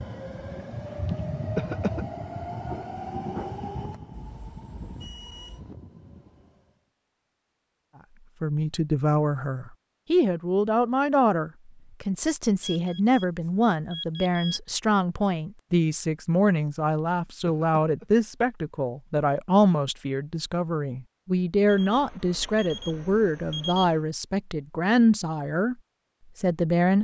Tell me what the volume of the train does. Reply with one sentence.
The volume of the train goes down.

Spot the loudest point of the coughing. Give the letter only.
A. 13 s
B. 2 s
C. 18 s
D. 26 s
B.